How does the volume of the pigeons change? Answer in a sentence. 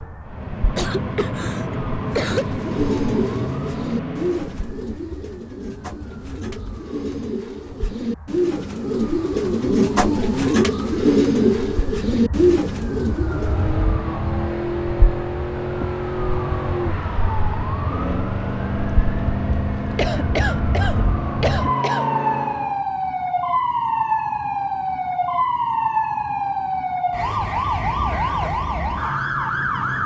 The volume of the pigeons goes down, then up.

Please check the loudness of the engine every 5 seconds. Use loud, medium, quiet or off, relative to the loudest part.
loud, off, loud, loud, loud, off.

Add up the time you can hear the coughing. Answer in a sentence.
You can hear the coughing for 4 seconds altogether.